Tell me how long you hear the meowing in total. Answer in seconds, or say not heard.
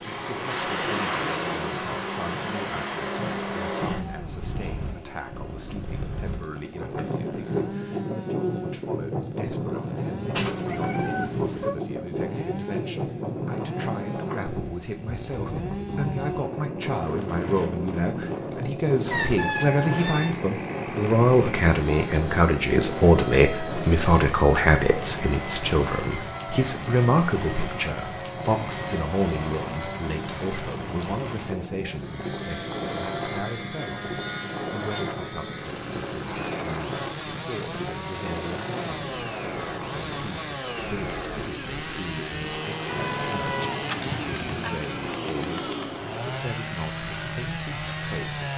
5 s.